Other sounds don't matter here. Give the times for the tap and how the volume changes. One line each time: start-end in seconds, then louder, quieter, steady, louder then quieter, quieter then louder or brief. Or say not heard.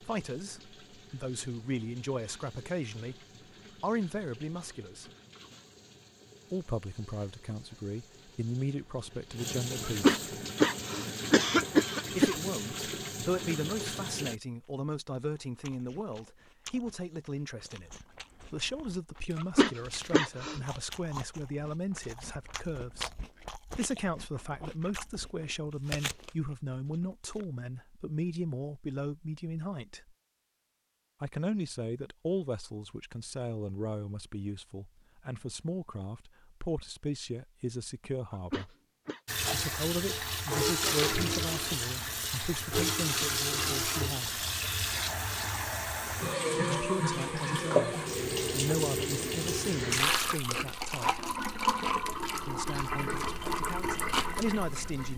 0.0-14.4 louder
39.2-55.1 steady.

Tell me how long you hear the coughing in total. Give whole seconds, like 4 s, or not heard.
5 s.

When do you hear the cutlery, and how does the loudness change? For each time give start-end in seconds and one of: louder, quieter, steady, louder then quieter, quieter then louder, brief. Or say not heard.
not heard.